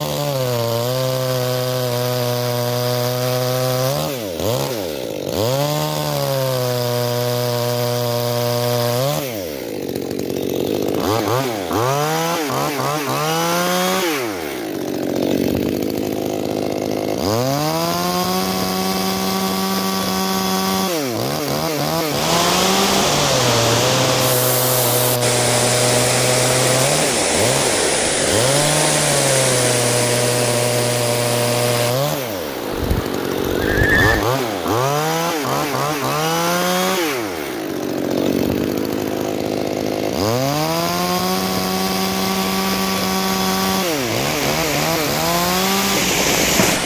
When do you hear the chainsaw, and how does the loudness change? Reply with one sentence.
The chainsaw can be heard from 0.0 to 46.8 s, at a steady volume.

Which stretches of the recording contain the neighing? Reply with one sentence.
The neighing can be heard from 32.7 to 34.2 s.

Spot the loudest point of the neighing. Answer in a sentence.
The volume of the neighing peaks at 34 seconds.